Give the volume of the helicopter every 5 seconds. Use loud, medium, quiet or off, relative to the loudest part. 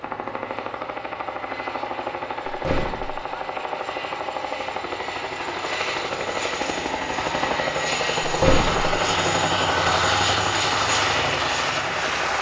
medium, loud, loud.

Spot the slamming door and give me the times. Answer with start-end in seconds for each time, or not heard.
2.5-3.2, 8.2-8.9.